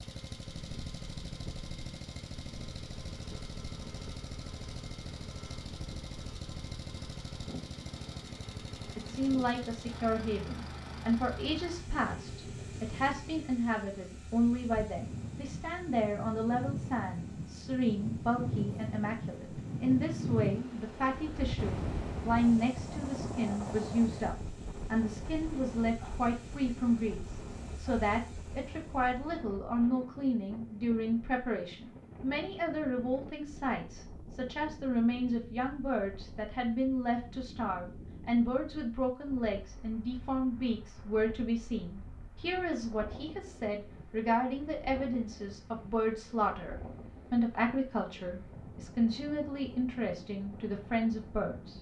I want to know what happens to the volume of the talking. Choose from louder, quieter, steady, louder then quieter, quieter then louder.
steady.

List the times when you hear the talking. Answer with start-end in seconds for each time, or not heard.
8.9-51.7.